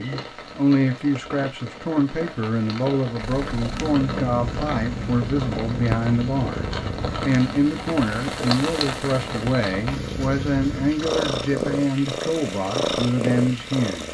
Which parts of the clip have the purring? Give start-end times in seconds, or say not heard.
3.1-14.0.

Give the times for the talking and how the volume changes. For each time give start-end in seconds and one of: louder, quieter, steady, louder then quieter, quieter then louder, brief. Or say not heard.
0.0-14.0 steady.